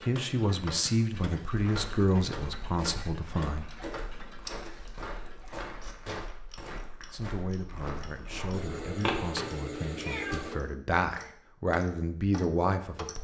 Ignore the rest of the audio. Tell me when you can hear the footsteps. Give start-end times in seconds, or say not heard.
1.6-8.7.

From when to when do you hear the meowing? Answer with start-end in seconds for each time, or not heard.
8.5-10.6.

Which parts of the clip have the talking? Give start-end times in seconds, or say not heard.
0.0-3.6, 7.1-13.1.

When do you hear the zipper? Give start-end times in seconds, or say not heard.
not heard.